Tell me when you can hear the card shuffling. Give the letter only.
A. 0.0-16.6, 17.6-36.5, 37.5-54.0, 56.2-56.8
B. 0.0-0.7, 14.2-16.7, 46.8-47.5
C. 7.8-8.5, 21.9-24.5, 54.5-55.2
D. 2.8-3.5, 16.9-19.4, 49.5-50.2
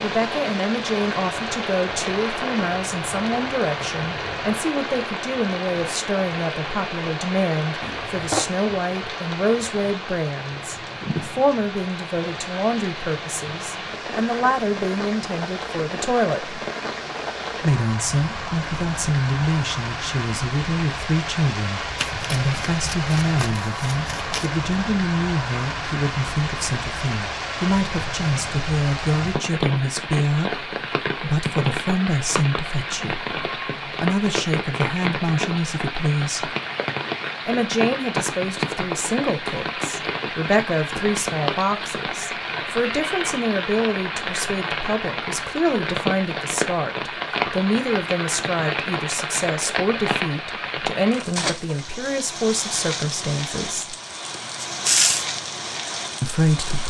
C.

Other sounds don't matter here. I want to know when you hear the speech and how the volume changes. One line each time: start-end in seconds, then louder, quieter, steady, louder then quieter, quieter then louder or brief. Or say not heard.
0.0-16.6 steady
17.6-36.5 steady
37.5-54.0 steady
56.2-56.8 brief.